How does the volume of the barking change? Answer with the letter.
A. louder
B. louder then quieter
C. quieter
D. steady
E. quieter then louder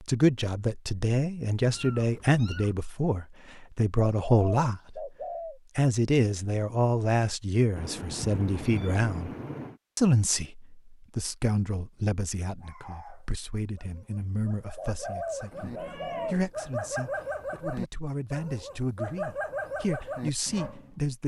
A.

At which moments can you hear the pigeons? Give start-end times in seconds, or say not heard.
4.2-5.6, 14.8-16.4.